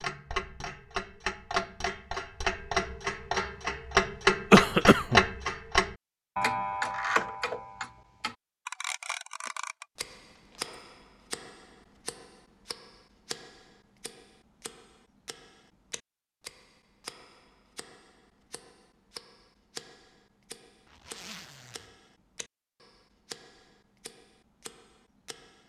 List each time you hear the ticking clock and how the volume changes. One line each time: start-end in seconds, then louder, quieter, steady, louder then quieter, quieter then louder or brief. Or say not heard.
0.0-25.6 quieter.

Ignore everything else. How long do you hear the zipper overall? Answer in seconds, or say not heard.
2 s.